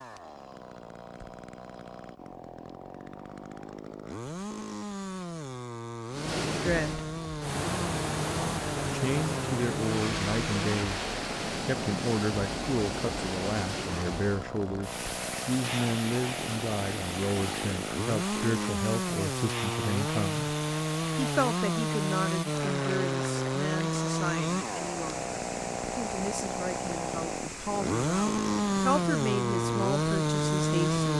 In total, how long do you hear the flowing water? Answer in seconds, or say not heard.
25 s.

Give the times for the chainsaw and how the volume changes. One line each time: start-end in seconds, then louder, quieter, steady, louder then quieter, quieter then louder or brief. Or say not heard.
0.0-31.1 louder.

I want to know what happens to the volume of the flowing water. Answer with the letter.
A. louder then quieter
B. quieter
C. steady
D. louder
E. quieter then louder
B.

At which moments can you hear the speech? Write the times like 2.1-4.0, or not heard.
6.5-7.0, 8.9-20.6, 21.1-31.1.